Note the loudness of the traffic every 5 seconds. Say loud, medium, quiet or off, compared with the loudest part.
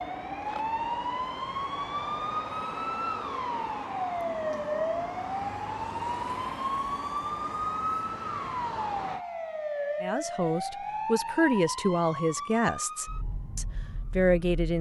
loud, loud, off.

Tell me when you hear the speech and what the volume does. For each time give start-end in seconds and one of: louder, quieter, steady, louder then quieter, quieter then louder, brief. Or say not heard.
10.0-14.7 quieter then louder.